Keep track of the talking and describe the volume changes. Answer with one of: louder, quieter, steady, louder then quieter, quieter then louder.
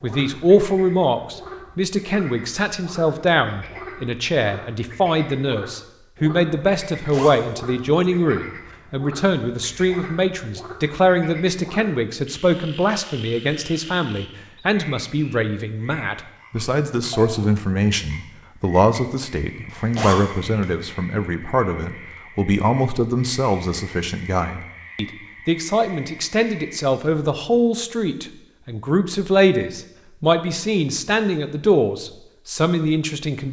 steady.